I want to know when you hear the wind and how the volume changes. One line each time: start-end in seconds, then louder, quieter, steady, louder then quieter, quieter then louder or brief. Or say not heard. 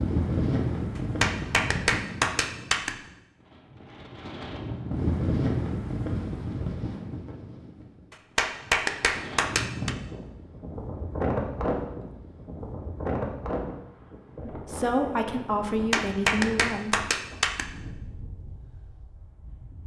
0.0-19.8 quieter.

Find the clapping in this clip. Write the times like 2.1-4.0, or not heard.
0.9-3.0, 8.1-9.9, 15.7-17.6.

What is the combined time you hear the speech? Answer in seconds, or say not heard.
3 s.